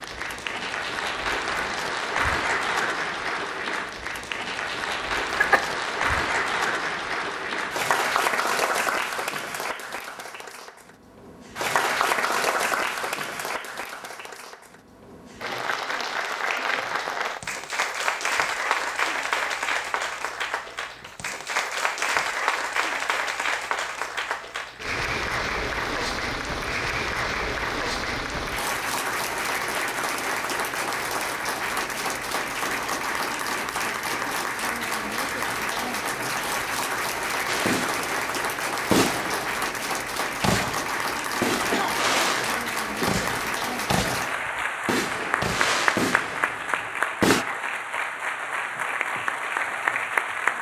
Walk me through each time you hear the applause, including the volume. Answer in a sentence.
You can hear the applause from 0.0 to 50.5 s, at a steady volume.